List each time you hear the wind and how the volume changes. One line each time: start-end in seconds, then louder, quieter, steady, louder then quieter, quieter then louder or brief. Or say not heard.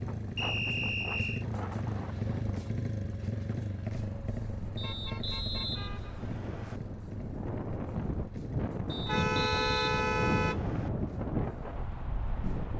0.0-12.7 quieter then louder.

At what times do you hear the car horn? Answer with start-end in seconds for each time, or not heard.
1.8-2.5, 4.8-6.2, 9.1-10.7.